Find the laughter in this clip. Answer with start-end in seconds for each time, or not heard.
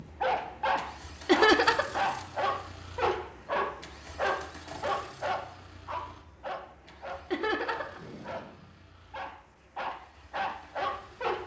1.2-2.0, 7.3-8.0.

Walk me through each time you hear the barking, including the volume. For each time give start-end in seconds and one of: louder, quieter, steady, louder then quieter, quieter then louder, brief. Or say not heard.
0.0-11.4 quieter then louder.